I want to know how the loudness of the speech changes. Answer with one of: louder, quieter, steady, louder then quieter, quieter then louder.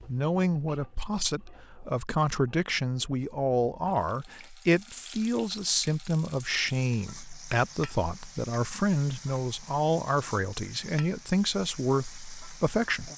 steady.